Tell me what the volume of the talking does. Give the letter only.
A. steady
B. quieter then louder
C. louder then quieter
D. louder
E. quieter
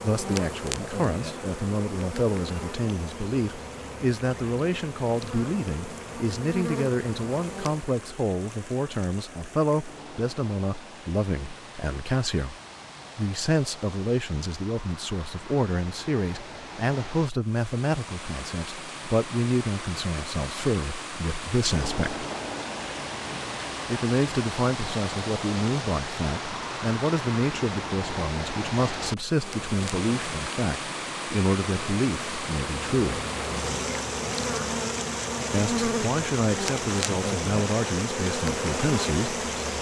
A.